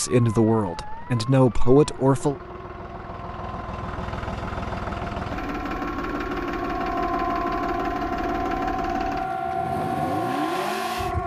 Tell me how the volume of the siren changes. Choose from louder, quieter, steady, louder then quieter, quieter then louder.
louder.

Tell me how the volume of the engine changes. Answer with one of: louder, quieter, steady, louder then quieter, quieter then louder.
louder.